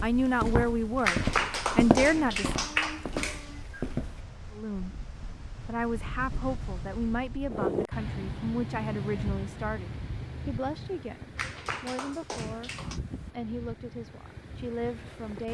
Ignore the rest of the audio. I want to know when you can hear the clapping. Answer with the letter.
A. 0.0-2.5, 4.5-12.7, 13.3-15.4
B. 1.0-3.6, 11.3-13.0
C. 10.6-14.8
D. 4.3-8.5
B.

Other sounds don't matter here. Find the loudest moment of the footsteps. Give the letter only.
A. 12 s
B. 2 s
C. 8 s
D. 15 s
B.